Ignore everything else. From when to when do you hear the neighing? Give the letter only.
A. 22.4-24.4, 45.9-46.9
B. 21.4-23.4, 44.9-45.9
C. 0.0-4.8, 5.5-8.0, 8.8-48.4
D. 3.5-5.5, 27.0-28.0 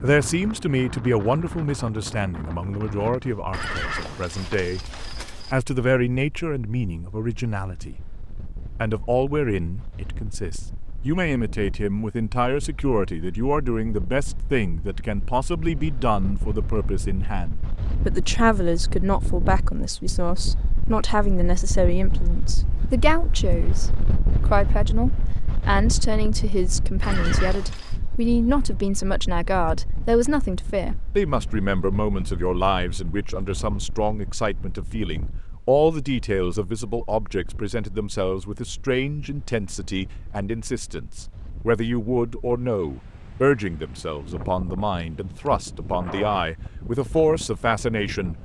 D.